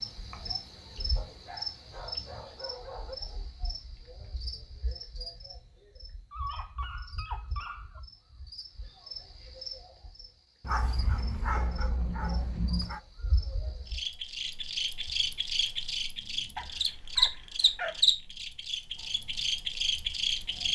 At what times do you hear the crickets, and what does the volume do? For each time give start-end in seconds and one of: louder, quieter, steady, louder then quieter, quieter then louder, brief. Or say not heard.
0.0-20.6 quieter then louder.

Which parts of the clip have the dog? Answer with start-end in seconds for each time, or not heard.
1.1-3.1, 6.3-8.0, 10.6-13.0, 16.6-18.1.